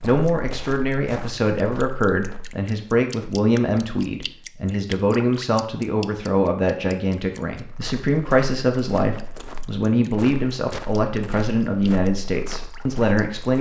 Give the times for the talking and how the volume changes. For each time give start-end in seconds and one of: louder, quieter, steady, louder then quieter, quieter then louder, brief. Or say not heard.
0.0-13.5 steady.